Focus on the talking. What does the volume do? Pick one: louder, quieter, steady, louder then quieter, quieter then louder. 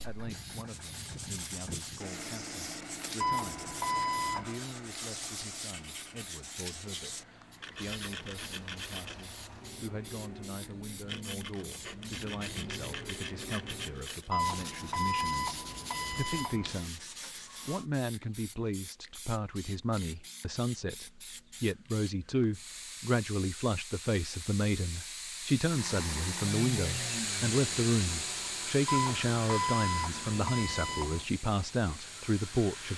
louder.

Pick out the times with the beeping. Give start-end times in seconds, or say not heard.
3.2-4.6, 14.3-16.8, 28.9-31.2.